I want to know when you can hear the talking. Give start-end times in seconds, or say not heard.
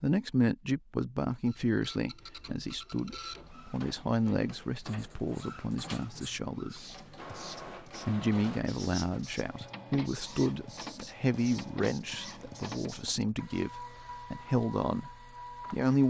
0.0-6.8, 8.1-16.0.